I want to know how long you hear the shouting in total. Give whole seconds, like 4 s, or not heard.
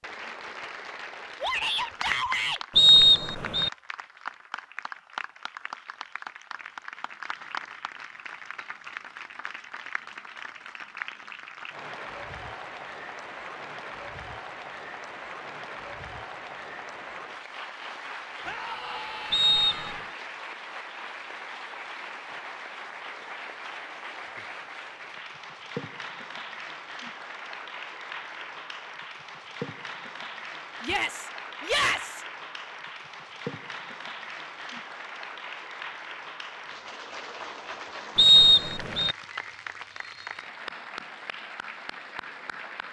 4 s.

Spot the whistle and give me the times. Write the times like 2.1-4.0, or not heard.
2.8-3.7, 19.3-20.0, 38.1-39.1.